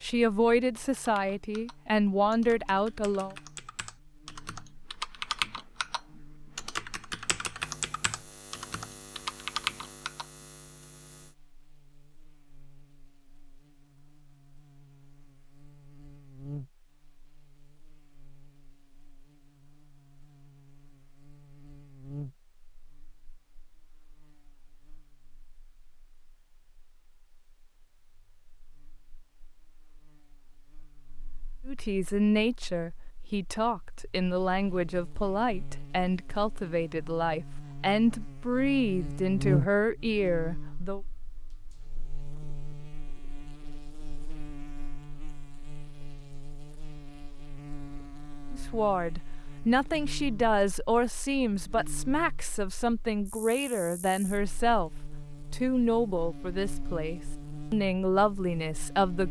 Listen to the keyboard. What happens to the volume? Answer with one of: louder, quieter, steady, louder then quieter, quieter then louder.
louder.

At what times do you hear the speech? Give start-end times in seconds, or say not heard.
0.0-3.4, 31.6-41.0, 48.5-54.9, 55.5-59.2.